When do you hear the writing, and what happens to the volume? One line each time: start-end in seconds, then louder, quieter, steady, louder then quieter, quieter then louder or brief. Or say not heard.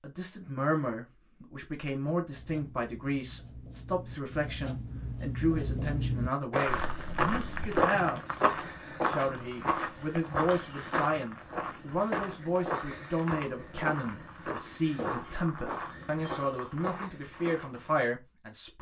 2.3-7.7 louder then quieter.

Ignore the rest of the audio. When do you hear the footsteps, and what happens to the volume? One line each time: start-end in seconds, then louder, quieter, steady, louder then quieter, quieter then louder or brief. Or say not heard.
6.5-18.0 quieter.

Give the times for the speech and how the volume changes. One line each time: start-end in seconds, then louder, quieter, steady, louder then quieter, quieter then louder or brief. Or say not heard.
0.0-18.7 steady.